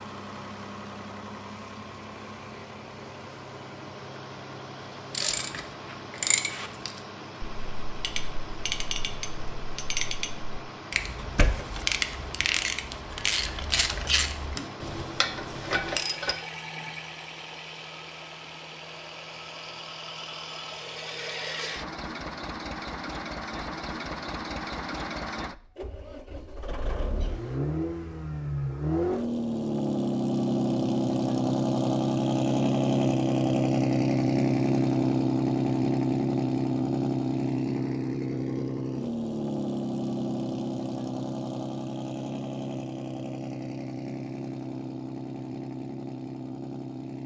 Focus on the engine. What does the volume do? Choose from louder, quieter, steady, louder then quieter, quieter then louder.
louder then quieter.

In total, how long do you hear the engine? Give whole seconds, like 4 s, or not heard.
47 s.